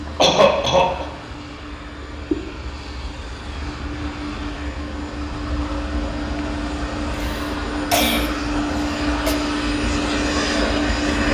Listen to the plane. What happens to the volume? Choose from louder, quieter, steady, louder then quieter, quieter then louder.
louder.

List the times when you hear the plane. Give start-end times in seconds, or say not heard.
0.0-11.2.